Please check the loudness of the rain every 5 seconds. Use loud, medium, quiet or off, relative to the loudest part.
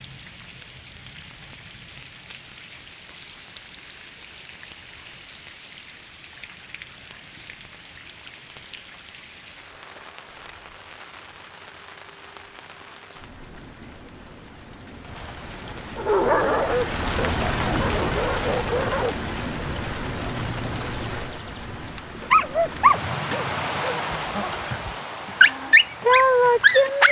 quiet, quiet, quiet, loud, loud, medium.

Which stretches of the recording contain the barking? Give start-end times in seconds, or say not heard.
15.9-19.2, 22.2-27.0.